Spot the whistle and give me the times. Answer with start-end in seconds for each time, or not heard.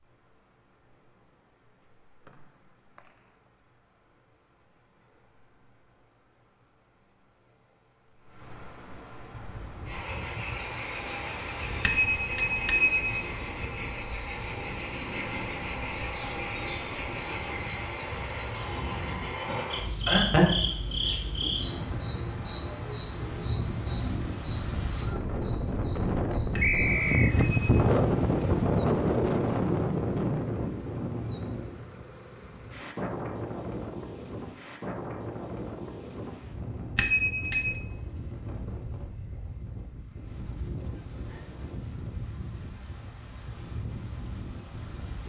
2.2-3.4, 26.6-27.4.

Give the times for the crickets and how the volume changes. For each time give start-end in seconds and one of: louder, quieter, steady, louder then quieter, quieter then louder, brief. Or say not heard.
0.0-26.9 louder then quieter.